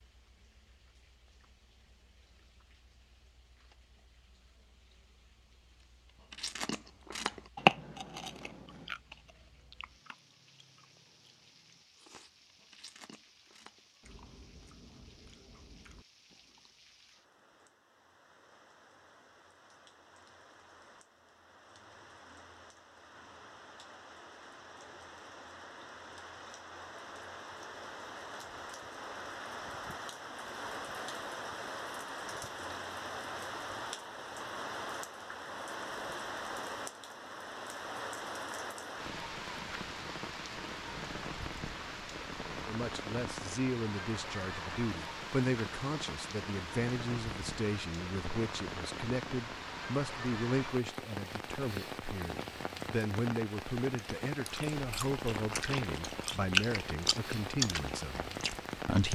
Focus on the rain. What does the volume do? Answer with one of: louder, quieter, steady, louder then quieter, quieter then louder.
louder.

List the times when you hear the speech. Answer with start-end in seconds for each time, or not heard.
42.6-59.1.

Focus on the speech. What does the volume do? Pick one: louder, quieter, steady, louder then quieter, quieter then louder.
steady.